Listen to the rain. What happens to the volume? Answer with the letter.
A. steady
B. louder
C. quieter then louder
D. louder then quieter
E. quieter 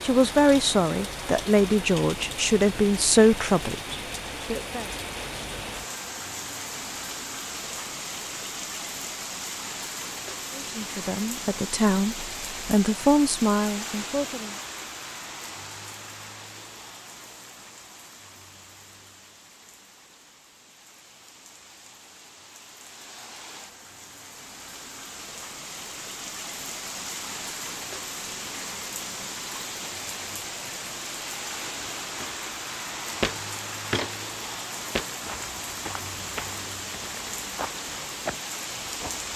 C.